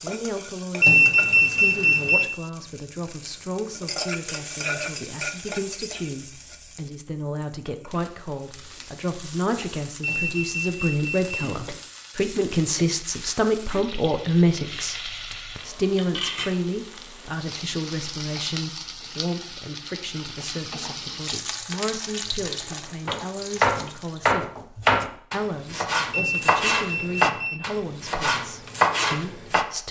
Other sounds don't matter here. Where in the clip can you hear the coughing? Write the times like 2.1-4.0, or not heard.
not heard.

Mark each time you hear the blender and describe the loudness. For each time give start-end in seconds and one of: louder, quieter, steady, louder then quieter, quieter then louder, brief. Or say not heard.
not heard.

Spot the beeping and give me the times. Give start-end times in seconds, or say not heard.
0.8-2.2, 10.0-11.5, 26.1-27.6.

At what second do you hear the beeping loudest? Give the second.
1 s.